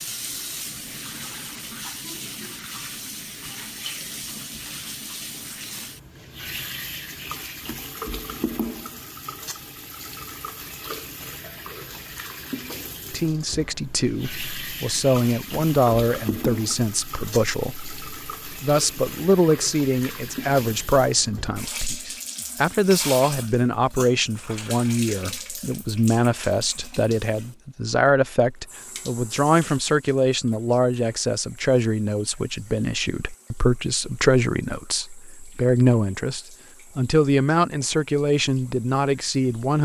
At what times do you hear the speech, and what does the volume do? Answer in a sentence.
The speech can be heard from 13.1 to 39.8 s, at a steady volume.